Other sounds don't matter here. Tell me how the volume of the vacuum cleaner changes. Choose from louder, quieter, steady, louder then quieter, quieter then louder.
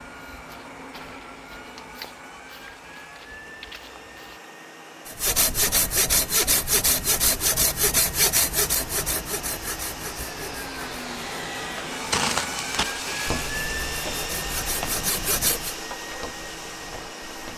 louder.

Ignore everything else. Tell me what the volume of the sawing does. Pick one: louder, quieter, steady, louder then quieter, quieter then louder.
quieter then louder.